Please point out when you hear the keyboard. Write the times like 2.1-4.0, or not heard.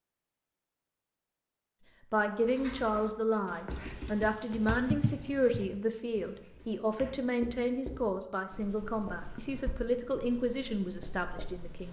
3.7-5.7.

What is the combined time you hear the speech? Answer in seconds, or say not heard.
10 s.